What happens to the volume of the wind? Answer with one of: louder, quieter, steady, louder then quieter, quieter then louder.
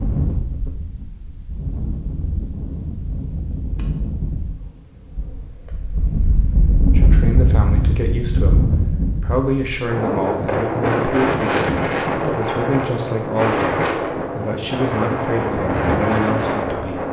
louder.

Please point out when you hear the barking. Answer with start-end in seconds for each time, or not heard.
not heard.